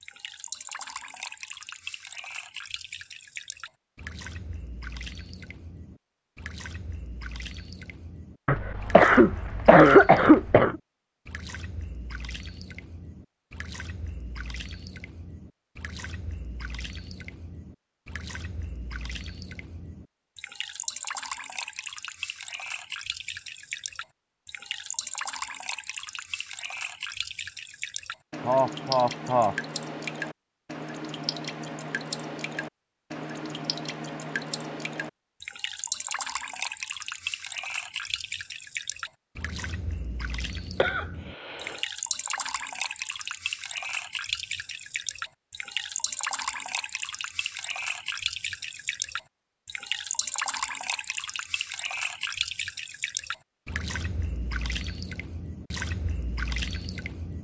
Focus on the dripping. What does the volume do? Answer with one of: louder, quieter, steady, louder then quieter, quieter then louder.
louder.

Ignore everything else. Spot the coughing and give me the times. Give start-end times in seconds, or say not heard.
8.4-10.8, 28.4-29.6, 40.8-41.8.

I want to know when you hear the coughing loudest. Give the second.
10 s.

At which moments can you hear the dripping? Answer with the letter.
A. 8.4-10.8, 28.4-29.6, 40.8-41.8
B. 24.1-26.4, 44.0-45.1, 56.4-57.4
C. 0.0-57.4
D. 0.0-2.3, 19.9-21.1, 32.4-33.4
C.